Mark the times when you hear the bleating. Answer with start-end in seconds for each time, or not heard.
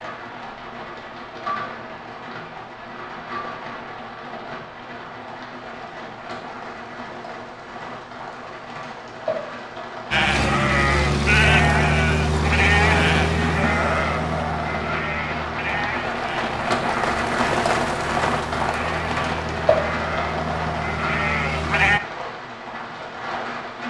10.1-22.0.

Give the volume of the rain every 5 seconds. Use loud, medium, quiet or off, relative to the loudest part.
medium, medium, medium, loud, medium.